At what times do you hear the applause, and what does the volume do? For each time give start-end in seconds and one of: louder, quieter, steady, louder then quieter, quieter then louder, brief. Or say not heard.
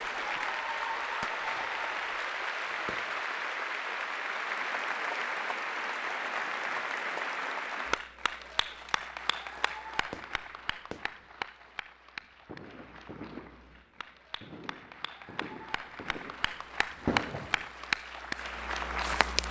0.0-19.4 quieter then louder.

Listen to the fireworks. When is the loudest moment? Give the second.
17 s.